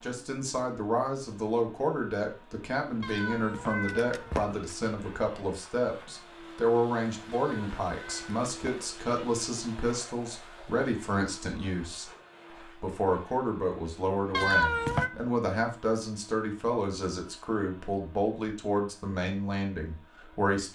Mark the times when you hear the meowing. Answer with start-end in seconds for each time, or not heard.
3.0-4.7, 7.3-9.1, 14.3-15.1.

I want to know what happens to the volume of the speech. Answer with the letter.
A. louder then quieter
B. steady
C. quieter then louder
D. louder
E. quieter
B.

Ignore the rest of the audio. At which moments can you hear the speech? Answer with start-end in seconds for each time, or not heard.
0.0-12.1, 12.7-20.7.